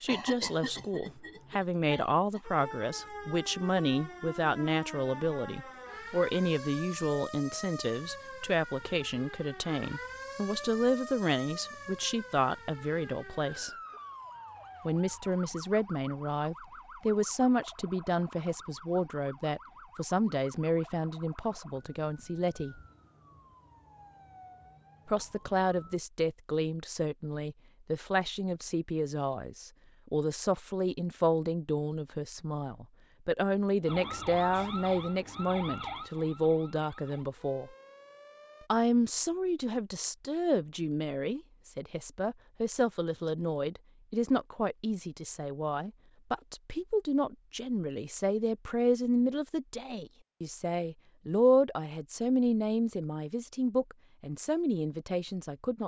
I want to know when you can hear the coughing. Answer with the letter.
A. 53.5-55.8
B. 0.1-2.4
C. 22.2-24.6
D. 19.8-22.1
B.